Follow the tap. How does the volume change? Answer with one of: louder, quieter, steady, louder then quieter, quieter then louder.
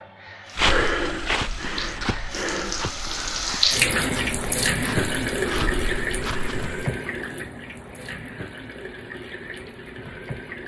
louder then quieter.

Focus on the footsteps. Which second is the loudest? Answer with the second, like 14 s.
1 s.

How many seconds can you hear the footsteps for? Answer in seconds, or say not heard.
6 s.